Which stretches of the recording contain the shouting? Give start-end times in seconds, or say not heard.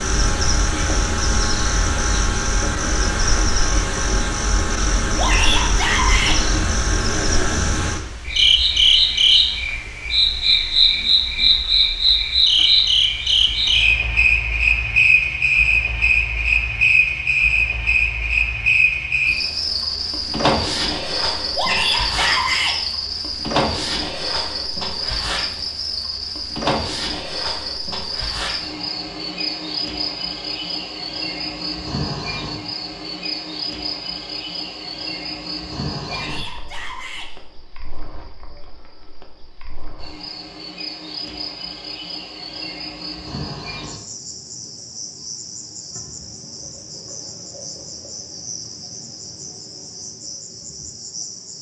5.2-6.3, 21.6-22.8, 36.0-37.3.